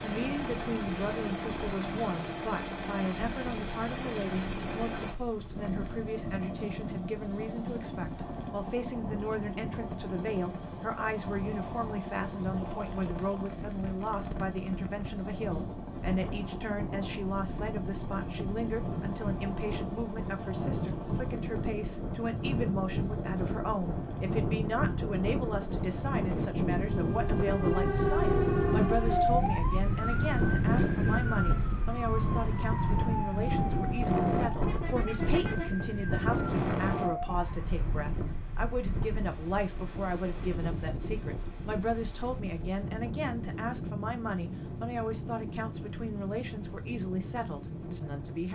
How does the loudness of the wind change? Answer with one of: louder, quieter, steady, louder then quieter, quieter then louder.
louder then quieter.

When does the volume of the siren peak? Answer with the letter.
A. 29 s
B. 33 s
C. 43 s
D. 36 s
A.